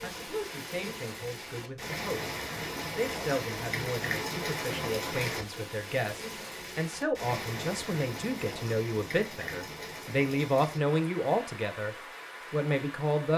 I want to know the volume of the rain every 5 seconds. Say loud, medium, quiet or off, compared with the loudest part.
loud, loud, medium.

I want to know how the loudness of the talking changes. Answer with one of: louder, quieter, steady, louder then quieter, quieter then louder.
louder.